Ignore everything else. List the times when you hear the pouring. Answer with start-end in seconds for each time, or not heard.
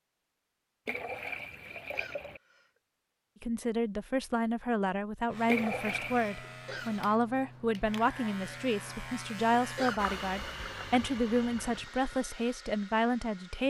0.8-2.4, 5.5-6.4, 9.8-11.9.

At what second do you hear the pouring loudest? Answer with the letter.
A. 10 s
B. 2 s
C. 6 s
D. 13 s
C.